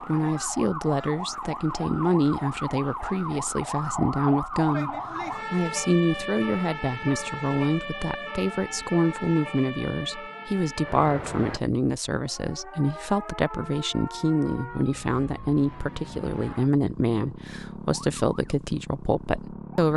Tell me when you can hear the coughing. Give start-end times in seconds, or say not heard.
not heard.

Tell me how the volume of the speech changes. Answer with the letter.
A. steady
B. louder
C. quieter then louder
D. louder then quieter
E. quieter
A.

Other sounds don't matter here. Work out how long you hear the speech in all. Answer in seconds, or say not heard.
20 s.